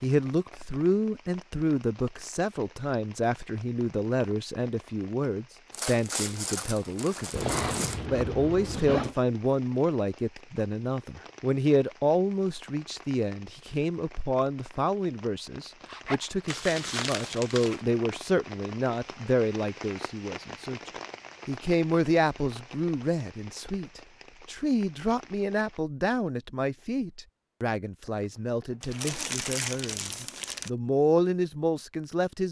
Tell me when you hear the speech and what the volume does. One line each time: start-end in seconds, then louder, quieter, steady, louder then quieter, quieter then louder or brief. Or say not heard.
0.0-32.4 steady.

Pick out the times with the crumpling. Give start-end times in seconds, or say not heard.
5.7-8.0, 16.4-17.8, 28.8-30.7.